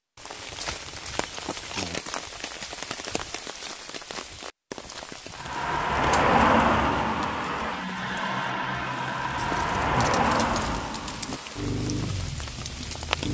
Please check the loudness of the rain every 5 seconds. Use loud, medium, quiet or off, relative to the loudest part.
loud, medium, loud.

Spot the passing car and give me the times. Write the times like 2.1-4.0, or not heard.
5.3-13.2.